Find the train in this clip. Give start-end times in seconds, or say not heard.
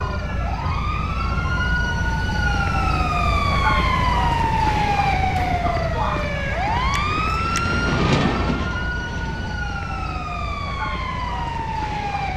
7.0-9.6.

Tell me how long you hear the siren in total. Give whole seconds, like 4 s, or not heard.
12 s.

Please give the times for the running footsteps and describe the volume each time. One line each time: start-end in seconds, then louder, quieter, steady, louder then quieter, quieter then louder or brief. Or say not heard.
not heard.